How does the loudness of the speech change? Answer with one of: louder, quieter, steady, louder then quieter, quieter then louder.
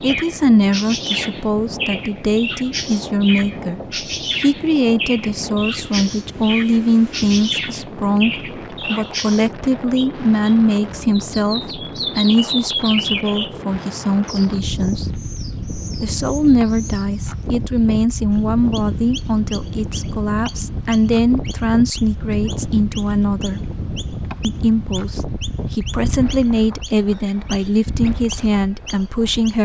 steady.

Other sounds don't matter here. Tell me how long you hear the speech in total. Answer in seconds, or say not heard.
28 s.